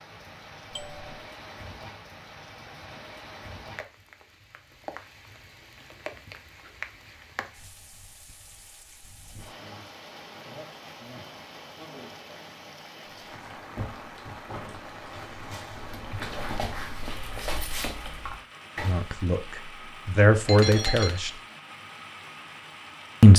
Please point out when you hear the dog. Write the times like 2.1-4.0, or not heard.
13.2-19.1.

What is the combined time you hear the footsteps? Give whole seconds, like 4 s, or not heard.
not heard.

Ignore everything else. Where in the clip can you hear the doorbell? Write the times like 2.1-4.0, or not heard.
0.7-1.1, 20.4-21.2.